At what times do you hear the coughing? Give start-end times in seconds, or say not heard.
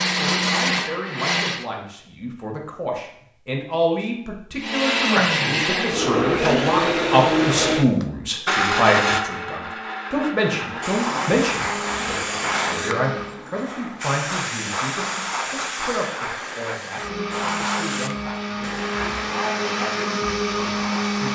not heard.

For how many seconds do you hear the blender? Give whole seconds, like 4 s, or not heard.
15 s.